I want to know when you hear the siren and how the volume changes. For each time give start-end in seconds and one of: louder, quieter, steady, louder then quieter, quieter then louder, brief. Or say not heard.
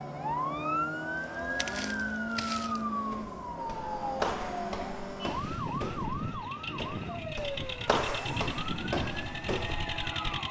0.0-10.4 quieter.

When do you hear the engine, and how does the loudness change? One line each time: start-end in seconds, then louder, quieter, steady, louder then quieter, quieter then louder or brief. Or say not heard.
0.0-10.4 steady.